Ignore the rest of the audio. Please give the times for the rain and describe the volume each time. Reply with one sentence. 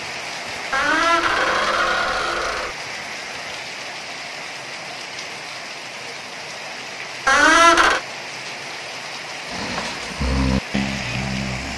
The rain can be heard from 0.0 to 11.7 s, at a steady volume.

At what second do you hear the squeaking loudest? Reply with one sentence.
The volume of the squeaking peaks at 8 seconds.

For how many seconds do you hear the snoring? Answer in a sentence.
You can hear the snoring for 2 seconds altogether.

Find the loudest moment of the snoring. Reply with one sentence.
The volume of the snoring peaks at 10 seconds.